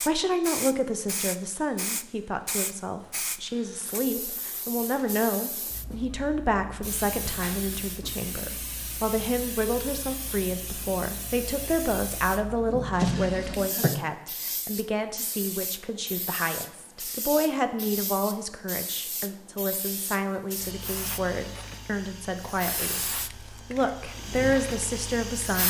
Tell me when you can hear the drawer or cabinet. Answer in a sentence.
You can hear the drawer or cabinet from 12.7 to 13.9 s.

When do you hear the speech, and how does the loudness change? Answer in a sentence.
The speech can be heard from 0.0 to 25.6 s, at a steady volume.